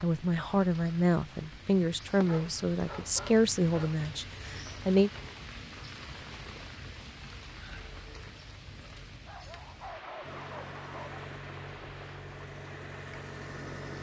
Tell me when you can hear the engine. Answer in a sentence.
The engine can be heard from 10.2 to 13.9 s.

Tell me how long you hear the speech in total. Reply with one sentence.
The speech can be heard for 5 seconds in total.